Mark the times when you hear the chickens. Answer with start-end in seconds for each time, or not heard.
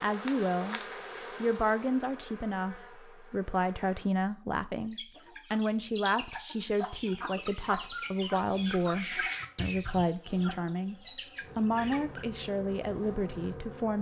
4.9-12.4.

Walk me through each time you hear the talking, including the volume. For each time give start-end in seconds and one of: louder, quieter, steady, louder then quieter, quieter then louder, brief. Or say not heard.
0.0-0.8 brief
1.4-10.9 steady
11.6-13.9 brief.